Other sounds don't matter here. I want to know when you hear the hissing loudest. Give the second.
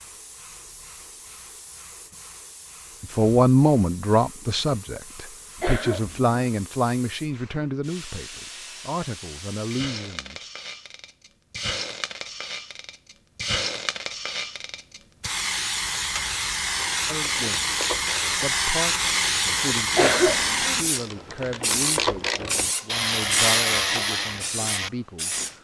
19 s.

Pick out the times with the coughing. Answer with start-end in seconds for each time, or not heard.
5.6-6.3, 19.9-20.9.